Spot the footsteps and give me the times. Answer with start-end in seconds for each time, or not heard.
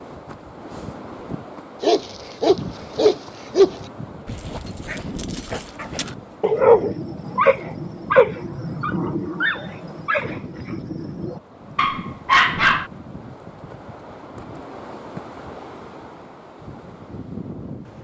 not heard.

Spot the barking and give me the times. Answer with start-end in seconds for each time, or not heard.
1.8-12.9.